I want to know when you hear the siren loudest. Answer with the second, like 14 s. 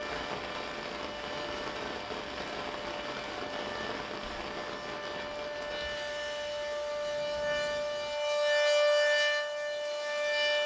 9 s.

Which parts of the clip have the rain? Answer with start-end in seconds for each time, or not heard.
0.0-10.6.